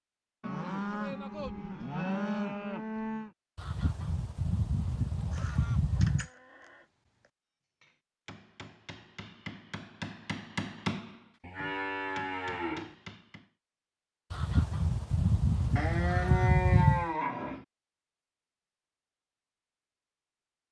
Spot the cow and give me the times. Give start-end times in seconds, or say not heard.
0.4-3.3, 5.3-6.8, 11.4-12.9, 15.8-17.6.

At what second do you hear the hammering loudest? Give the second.
11 s.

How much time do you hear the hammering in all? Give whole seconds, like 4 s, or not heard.
6 s.